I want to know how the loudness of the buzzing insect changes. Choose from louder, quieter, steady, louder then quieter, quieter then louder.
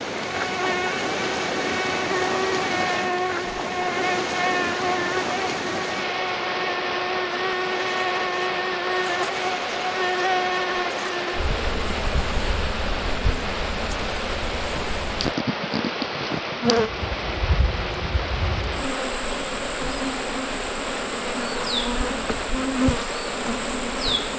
steady.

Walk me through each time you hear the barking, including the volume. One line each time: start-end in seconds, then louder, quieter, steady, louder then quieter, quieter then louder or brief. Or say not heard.
not heard.